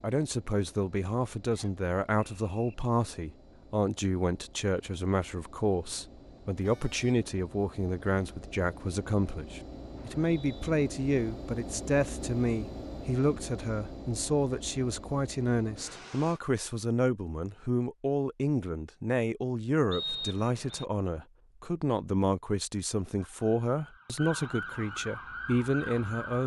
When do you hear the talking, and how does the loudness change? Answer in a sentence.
You can hear the talking from 0.0 to 26.4 s, at a steady volume.